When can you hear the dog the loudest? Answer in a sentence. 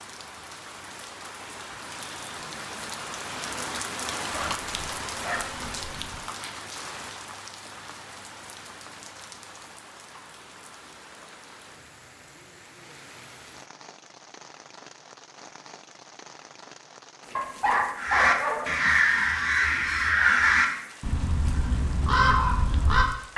The volume of the dog peaks at 18 seconds.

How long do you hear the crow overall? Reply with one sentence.
You can hear the crow for 5 seconds altogether.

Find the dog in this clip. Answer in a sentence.
You can hear the dog from 4.3 to 6.2 s and from 17.4 to 18.9 s.